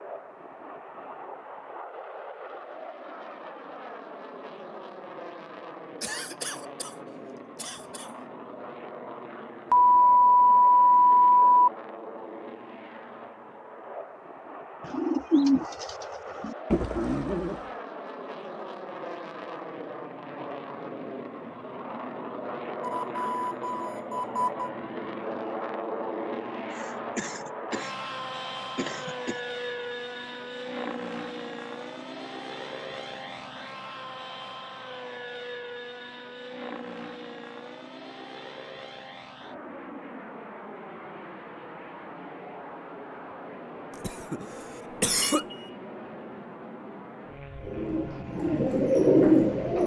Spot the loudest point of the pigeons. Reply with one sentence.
The loudest moment of the pigeons is at 49 seconds.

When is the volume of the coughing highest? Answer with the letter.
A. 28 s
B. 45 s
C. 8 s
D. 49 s
B.